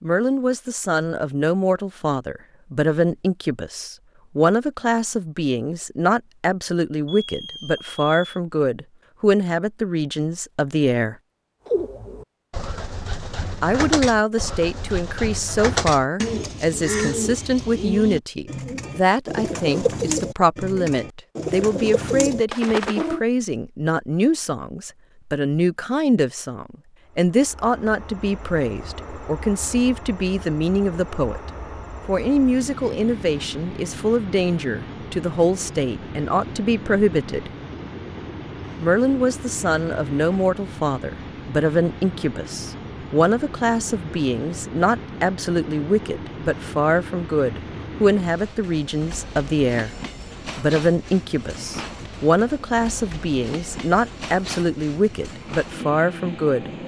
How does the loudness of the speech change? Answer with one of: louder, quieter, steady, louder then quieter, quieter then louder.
steady.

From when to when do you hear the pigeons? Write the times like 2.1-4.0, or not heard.
11.7-23.2.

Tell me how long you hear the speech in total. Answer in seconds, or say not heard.
52 s.